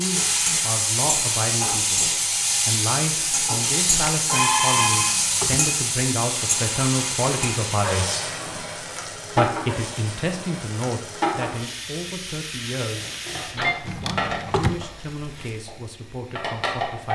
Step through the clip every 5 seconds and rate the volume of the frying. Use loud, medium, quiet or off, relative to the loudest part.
loud, loud, medium, medium.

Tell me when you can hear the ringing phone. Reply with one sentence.
The ringing phone can be heard from 4.2 to 5.2 s and from 13.0 to 13.8 s.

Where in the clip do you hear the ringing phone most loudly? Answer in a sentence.
The volume of the ringing phone peaks at 5 seconds.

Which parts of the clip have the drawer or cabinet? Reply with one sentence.
You can hear the drawer or cabinet from 5.0 to 5.7 s and from 13.8 to 14.8 s.